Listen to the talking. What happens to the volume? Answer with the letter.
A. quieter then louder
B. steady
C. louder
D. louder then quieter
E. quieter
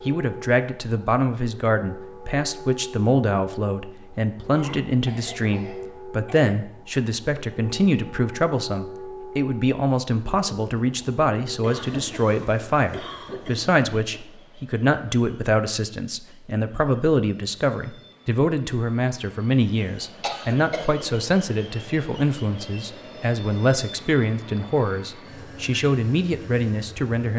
B.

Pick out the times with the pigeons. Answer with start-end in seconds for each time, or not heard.
not heard.